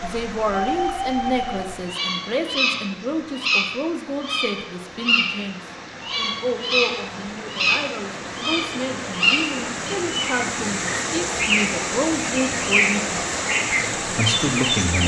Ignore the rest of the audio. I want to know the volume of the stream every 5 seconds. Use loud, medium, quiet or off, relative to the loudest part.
quiet, medium, loud.